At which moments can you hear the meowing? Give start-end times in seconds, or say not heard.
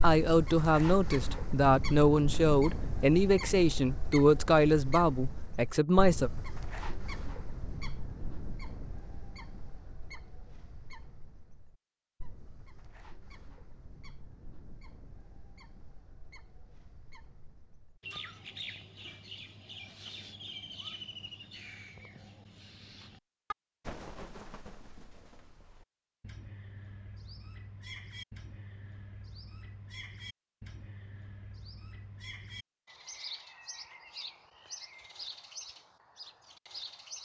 not heard.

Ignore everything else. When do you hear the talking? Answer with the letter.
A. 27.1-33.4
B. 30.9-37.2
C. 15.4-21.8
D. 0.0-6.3
D.